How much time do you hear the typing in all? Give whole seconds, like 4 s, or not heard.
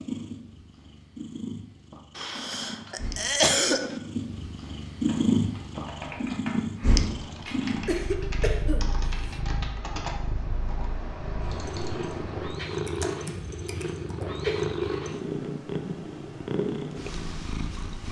9 s.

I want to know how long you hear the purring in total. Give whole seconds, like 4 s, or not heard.
18 s.